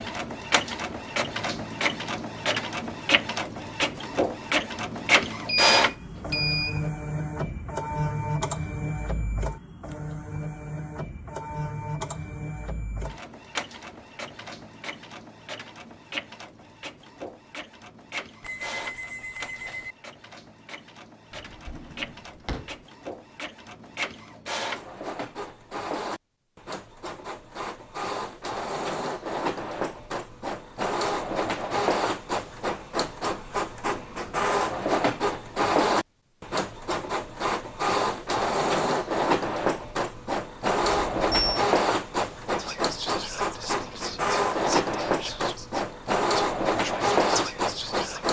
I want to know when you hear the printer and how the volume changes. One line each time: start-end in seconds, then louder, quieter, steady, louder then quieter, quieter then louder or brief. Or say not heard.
0.0-48.2 quieter then louder.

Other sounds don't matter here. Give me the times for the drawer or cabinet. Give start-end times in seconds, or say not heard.
21.3-22.9.